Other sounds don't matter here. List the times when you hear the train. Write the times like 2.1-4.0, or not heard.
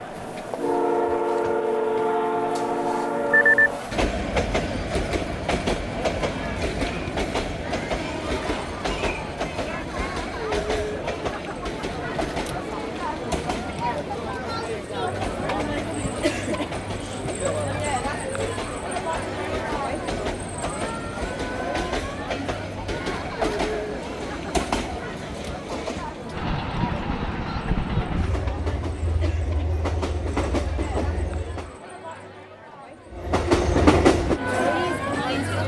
0.0-31.8, 33.1-35.5.